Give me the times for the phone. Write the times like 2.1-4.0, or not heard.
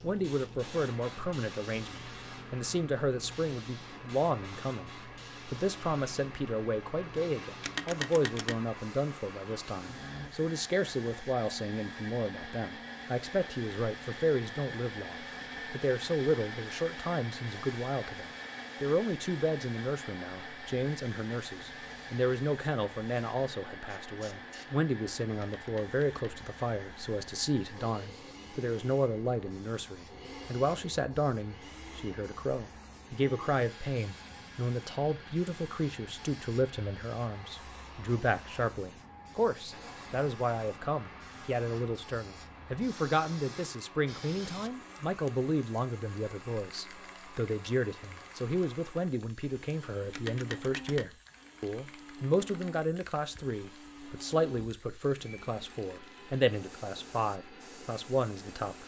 7.6-8.6, 25.4-26.4, 50.1-51.0.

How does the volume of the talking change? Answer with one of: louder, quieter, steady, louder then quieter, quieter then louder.
steady.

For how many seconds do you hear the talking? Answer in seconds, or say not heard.
59 s.